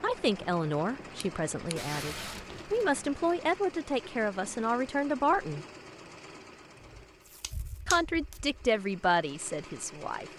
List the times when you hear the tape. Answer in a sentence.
You can hear the tape from 1.8 to 2.8 s and from 7.2 to 8.4 s.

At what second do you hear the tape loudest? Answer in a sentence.
The volume of the tape peaks at 2 seconds.